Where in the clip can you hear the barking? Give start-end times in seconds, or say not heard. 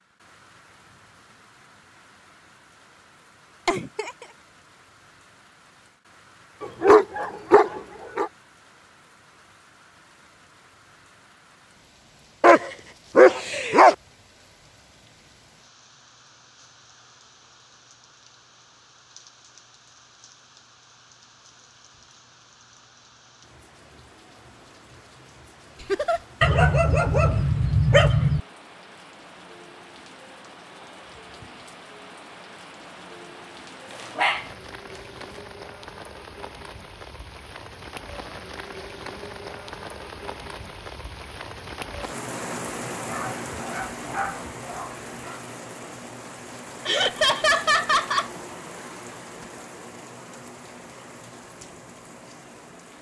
6.6-8.3, 12.4-13.9, 26.4-28.4, 33.9-35.2, 43.0-45.4.